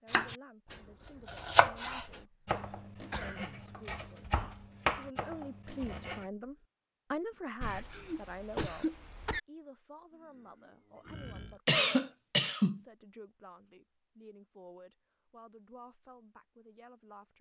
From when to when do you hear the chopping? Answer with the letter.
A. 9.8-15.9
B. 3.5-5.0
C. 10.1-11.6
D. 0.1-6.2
D.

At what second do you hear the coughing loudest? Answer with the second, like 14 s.
12 s.